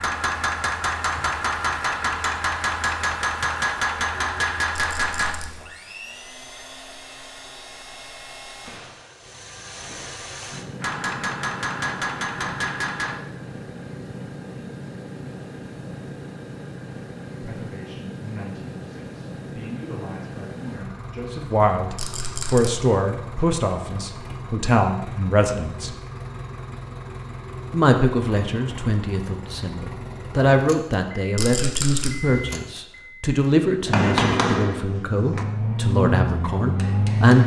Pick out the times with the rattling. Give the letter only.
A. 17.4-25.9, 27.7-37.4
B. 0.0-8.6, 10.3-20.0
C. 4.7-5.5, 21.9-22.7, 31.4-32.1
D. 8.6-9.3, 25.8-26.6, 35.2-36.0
C.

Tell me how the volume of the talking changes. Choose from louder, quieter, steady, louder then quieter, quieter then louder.
louder.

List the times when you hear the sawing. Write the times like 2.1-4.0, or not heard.
not heard.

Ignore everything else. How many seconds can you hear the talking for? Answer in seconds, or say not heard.
18 s.